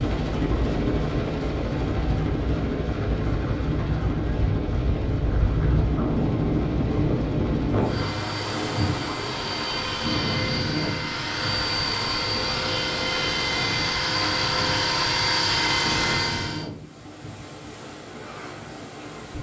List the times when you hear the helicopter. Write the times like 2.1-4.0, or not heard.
0.0-16.7.